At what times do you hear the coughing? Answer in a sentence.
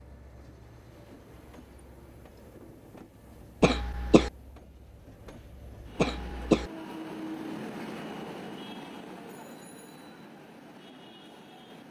The coughing can be heard from 3.6 to 4.3 s and from 6.0 to 6.7 s.